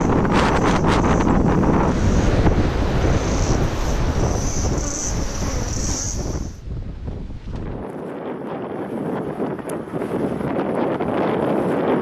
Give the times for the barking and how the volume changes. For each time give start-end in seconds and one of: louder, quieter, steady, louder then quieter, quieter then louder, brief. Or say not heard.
not heard.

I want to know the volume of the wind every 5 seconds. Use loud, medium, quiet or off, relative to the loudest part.
loud, medium, loud.